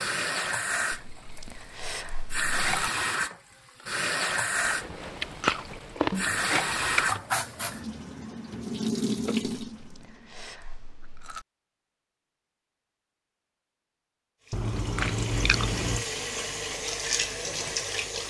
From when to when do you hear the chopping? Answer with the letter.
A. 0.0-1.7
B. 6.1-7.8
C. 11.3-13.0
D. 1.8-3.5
B.